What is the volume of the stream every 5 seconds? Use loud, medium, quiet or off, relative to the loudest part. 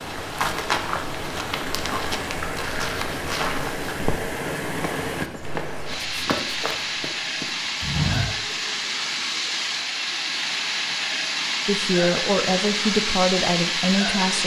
medium, loud, loud.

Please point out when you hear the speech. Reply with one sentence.
You can hear the speech from 11.7 to 14.4 s.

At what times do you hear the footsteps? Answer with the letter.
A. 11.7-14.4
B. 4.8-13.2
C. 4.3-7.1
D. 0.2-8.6
D.